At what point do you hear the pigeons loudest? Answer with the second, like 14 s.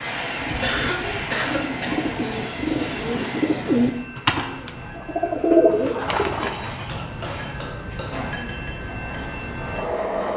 6 s.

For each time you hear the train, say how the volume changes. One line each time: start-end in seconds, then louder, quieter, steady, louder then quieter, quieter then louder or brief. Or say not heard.
0.0-10.3 quieter then louder.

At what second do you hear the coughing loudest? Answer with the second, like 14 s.
1 s.